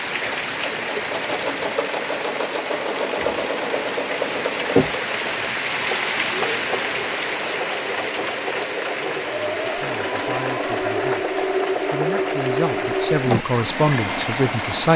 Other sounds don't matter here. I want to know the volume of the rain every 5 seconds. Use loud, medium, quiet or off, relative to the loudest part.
loud, loud, medium.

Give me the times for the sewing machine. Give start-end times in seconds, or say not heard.
0.1-14.9.